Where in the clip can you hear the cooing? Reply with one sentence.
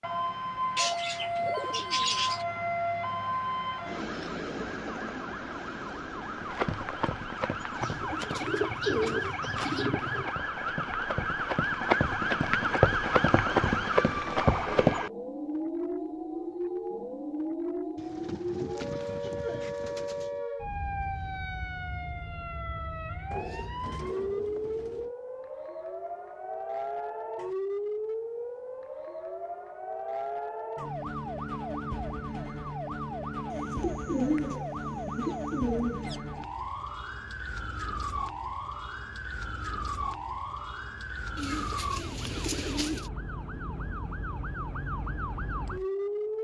The cooing can be heard from 0.8 to 2.5 s, from 7.8 to 10.3 s, from 17.9 to 20.4 s, from 23.3 to 25.1 s, from 33.5 to 36.2 s and from 41.4 to 43.1 s.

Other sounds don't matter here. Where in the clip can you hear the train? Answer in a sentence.
The train can't be heard in this clip.